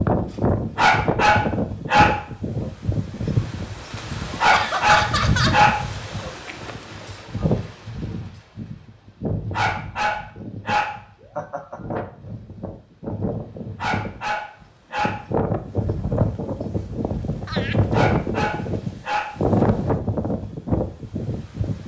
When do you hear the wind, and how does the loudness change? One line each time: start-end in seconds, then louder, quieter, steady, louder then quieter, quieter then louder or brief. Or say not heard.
0.0-21.8 quieter then louder.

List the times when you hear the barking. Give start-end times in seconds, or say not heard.
0.8-2.6, 4.4-6.3, 9.5-11.4, 13.8-15.2, 17.9-19.4.